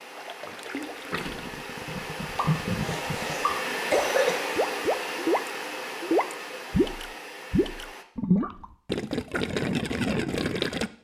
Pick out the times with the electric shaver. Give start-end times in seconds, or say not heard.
not heard.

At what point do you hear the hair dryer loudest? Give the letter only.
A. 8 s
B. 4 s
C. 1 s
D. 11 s
B.